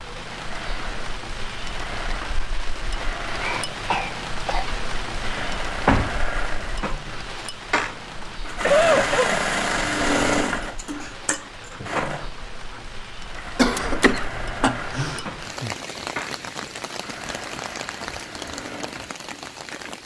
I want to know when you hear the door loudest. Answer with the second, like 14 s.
6 s.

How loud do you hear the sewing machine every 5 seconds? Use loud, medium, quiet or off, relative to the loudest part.
medium, loud, loud, medium.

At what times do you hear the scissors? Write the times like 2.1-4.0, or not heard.
not heard.